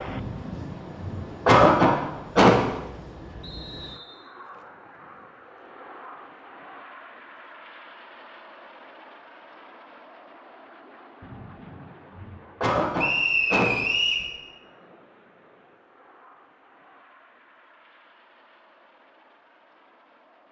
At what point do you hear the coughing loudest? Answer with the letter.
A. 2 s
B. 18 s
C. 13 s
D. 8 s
A.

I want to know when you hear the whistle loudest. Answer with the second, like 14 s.
13 s.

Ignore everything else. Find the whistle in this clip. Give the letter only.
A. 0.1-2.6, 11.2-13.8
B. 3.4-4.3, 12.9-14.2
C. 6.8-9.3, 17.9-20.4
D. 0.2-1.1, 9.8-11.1
B.